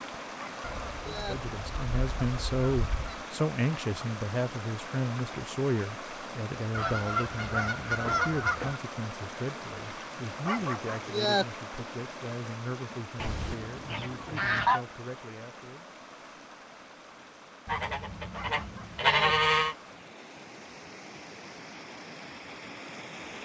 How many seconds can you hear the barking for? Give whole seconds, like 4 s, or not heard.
3 s.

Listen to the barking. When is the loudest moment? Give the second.
11 s.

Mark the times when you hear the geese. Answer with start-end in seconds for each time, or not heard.
0.6-3.2, 6.8-8.8, 13.2-14.8, 17.6-19.8.